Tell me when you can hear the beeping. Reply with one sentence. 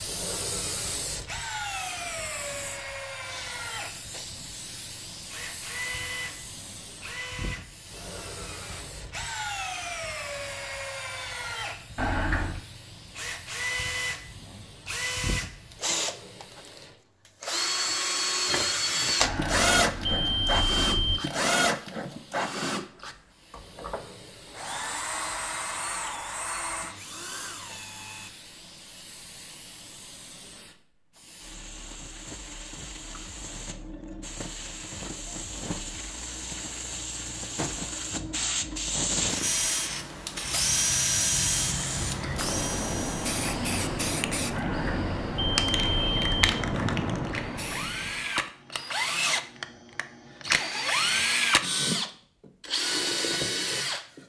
You can hear the beeping from 11.9 to 12.6 s, from 19.2 to 21.2 s and from 44.5 to 46.4 s.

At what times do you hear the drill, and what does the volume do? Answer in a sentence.
You can hear the drill from 0.0 to 28.3 s, getting louder then quieter; and from 39.4 to 54.2 s, getting quieter then louder.